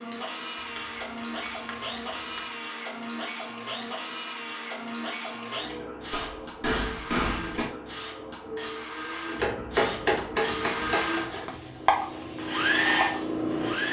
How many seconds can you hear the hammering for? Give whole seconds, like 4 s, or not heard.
5 s.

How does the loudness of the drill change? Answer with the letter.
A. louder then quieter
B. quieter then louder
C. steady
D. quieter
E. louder
E.